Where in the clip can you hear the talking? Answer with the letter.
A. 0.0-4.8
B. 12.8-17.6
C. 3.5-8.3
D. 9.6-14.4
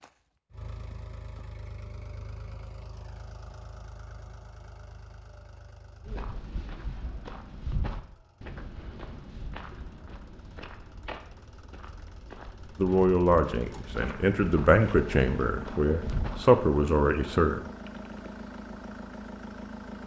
B.